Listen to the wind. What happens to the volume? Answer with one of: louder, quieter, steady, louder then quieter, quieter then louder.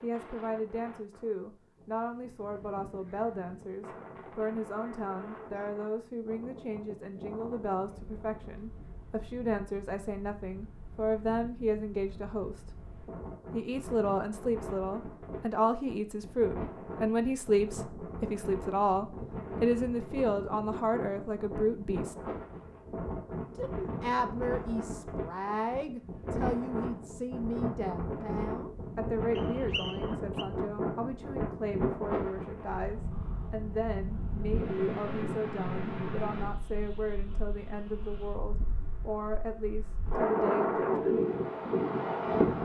louder.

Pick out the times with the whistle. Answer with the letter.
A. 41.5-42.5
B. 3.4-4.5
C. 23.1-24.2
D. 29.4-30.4
D.